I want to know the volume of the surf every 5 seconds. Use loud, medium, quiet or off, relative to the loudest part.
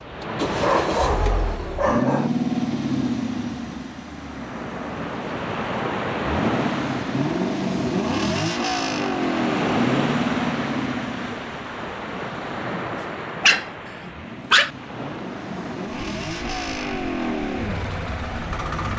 medium, loud, loud, medium.